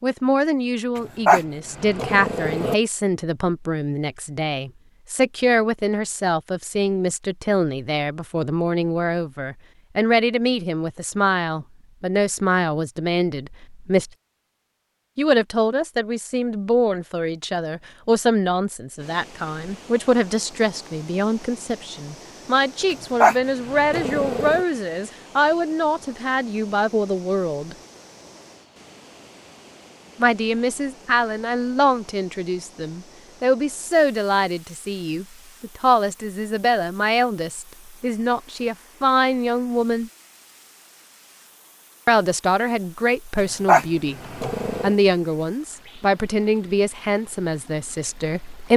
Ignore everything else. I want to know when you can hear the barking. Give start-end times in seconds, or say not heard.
1.2-2.8, 23.2-24.6, 43.6-45.0.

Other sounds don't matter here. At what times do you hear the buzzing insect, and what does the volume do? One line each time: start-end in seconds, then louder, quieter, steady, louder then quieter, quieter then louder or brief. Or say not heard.
not heard.